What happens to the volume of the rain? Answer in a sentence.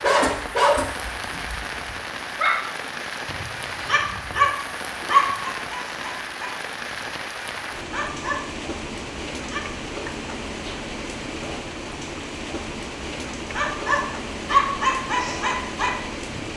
The loudness of the rain stays about the same.